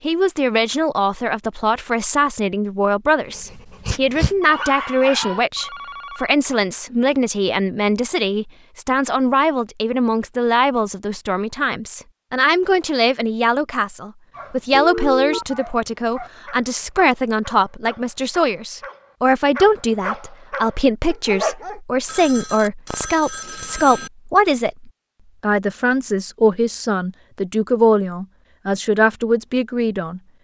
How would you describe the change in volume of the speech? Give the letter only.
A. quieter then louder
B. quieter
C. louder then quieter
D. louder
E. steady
E.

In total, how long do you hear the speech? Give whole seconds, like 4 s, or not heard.
30 s.